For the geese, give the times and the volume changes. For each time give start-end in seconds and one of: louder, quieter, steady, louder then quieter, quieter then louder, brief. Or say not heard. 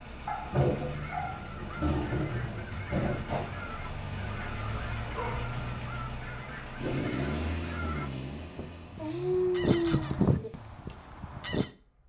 0.8-11.7 louder.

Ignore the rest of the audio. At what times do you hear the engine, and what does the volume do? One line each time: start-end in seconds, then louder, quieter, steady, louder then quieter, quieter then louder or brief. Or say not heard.
0.0-12.0 quieter.